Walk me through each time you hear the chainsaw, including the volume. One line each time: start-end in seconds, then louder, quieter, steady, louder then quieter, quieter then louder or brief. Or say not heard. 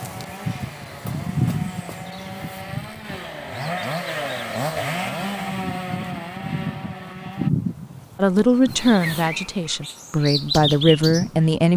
0.0-7.5 louder then quieter.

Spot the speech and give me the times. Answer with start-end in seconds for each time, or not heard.
8.2-11.7.